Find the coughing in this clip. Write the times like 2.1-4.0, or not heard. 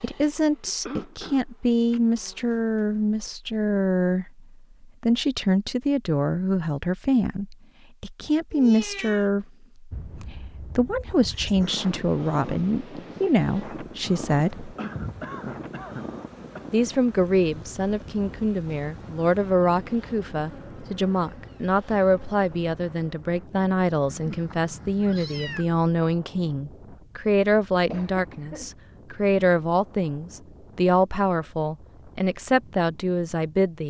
0.7-1.4, 14.8-16.6, 27.9-28.8.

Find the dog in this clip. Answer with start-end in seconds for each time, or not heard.
not heard.